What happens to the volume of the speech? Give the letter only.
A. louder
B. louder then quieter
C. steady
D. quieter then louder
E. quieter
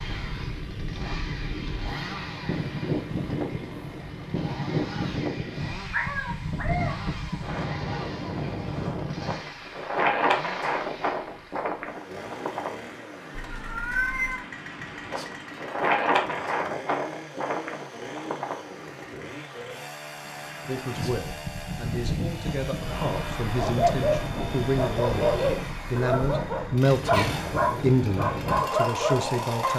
A.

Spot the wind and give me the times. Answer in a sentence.
You can hear the wind from 0.0 to 29.7 s.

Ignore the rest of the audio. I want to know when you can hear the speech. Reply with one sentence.
You can hear the speech from 20.6 to 29.7 s.